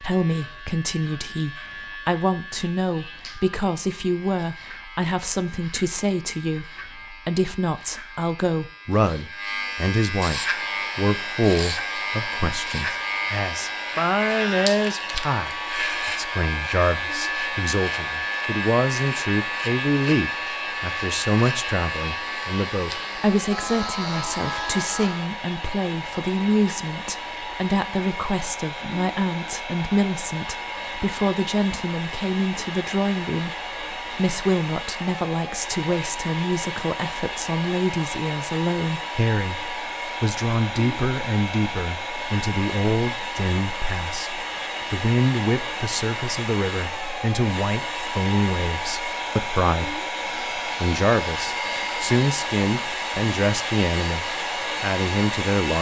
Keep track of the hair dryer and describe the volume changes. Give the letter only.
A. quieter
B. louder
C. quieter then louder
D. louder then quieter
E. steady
B.